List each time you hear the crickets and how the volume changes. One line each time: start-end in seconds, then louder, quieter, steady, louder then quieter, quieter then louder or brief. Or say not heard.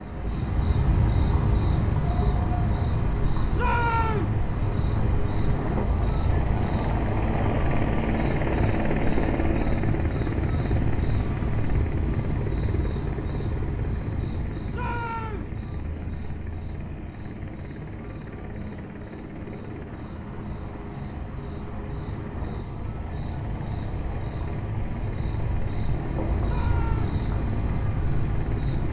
0.0-28.8 quieter then louder.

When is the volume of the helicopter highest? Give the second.
9 s.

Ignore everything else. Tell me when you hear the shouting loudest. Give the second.
4 s.